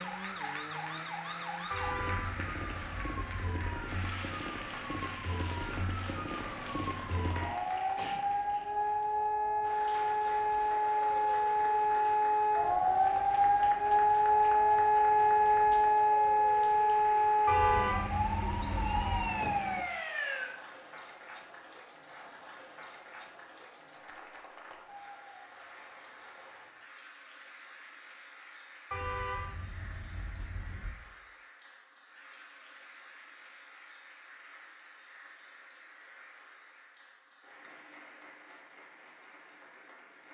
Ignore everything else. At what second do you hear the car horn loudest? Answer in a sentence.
The volume of the car horn peaks at 18 seconds.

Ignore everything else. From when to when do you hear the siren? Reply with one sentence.
You can hear the siren from 0.0 to 20.6 s.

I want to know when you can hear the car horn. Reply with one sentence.
You can hear the car horn from 1.7 to 3.5 s, from 17.4 to 19.2 s and from 28.9 to 30.9 s.